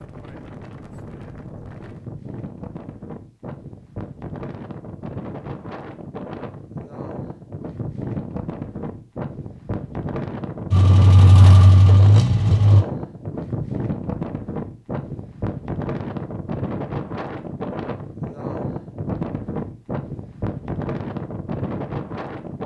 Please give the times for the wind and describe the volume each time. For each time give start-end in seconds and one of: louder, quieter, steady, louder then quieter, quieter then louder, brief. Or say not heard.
0.0-22.6 louder.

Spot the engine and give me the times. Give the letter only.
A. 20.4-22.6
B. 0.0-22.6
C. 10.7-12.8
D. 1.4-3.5
C.